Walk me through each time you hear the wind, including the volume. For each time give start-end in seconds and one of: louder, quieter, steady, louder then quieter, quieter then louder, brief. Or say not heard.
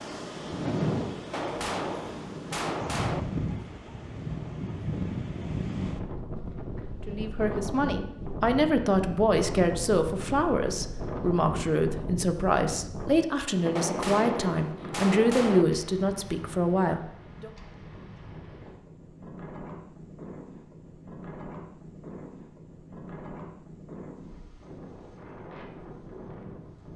0.0-26.9 quieter.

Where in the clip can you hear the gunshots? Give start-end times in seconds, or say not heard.
1.3-3.2, 13.8-15.7.